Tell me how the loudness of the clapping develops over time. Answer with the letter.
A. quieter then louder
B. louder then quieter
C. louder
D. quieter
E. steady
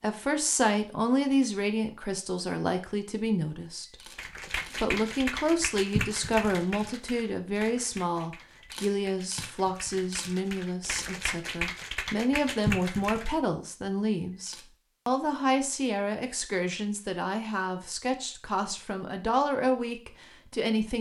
A.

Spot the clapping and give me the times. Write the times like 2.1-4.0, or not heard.
4.2-13.3.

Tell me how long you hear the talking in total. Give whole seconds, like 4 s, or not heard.
20 s.